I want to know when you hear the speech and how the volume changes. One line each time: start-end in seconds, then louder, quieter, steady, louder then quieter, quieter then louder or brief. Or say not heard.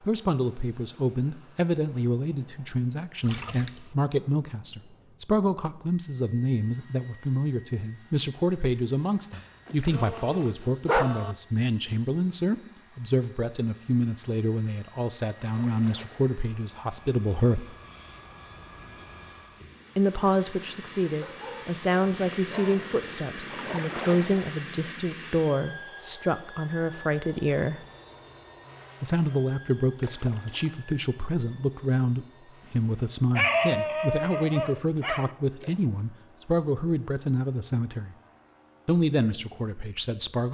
0.0-17.8 steady
19.9-27.9 steady
29.0-38.1 steady
38.9-40.4 brief.